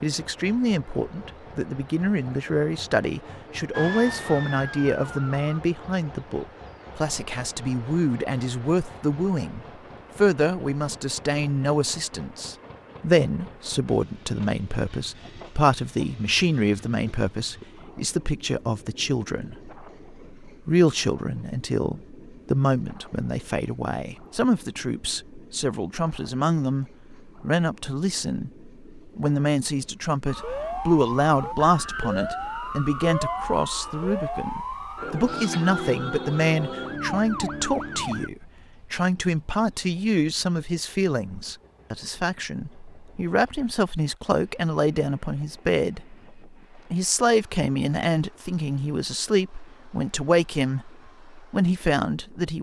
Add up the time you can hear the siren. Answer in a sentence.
The siren can be heard for 10 seconds in total.